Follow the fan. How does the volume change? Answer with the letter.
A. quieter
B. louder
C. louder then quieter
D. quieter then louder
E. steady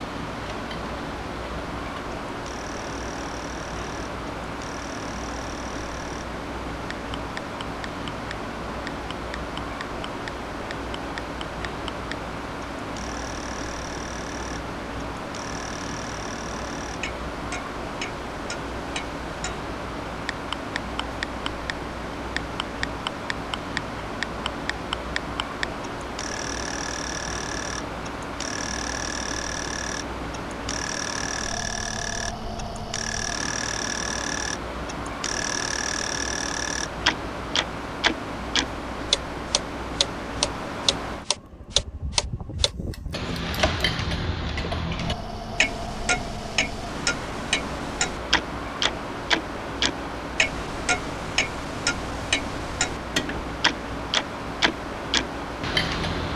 E.